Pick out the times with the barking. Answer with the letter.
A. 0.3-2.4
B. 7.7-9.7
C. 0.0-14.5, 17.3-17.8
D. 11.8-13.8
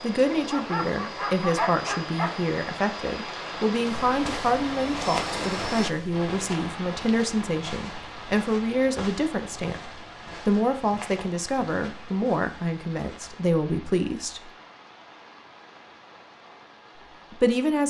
A.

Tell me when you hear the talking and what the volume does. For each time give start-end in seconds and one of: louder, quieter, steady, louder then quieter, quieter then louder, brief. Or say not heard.
0.0-14.5 steady
17.3-17.8 brief.